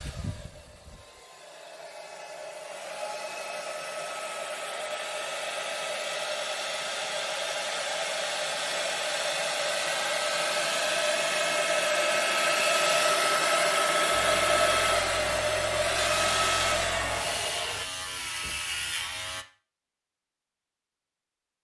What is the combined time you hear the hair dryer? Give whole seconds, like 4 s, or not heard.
18 s.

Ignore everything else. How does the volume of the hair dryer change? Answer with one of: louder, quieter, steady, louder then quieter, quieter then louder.
louder.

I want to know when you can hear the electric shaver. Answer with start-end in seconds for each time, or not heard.
14.1-19.4.